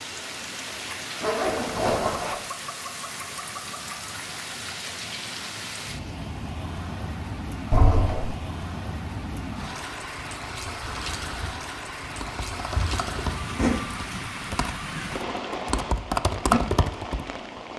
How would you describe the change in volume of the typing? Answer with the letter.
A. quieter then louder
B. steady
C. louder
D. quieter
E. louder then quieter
A.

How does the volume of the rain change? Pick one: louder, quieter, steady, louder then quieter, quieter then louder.
steady.